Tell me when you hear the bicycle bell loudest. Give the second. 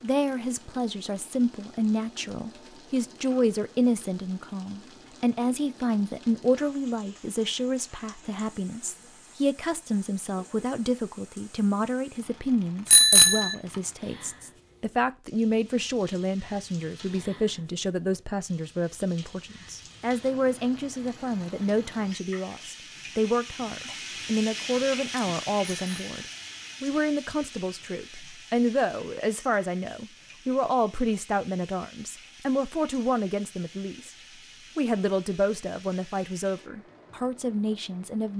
13 s.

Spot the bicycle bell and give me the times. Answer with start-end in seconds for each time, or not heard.
12.9-13.6, 25.7-26.2.